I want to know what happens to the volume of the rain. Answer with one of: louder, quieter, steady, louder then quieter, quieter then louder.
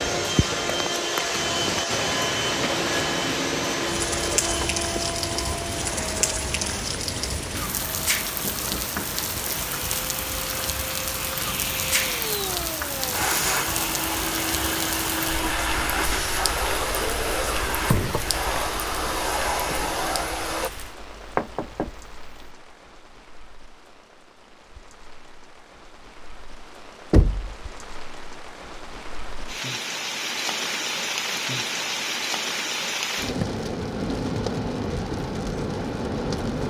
quieter then louder.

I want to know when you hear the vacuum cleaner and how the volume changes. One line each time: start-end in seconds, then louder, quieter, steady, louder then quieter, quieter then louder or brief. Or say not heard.
0.0-20.7 quieter then louder.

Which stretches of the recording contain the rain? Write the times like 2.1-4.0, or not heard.
0.0-36.6.